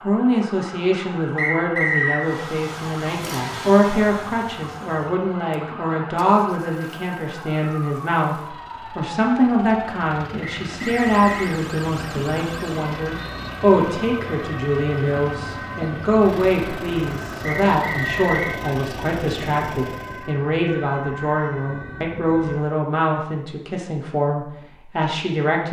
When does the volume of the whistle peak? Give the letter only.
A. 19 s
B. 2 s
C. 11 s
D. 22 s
B.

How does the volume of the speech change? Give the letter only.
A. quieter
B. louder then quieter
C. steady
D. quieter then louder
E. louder
C.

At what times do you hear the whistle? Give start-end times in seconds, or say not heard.
1.4-2.2, 10.4-11.6, 17.6-18.6.